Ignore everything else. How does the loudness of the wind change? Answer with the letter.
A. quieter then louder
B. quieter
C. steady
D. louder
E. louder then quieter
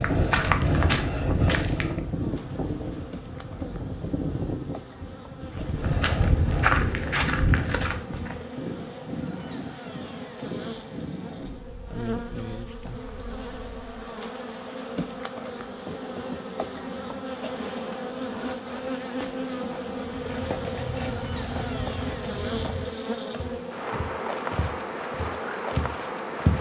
B.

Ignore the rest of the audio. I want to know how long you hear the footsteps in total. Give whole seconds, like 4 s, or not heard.
11 s.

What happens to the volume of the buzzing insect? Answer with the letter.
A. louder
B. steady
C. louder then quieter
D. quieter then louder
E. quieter
A.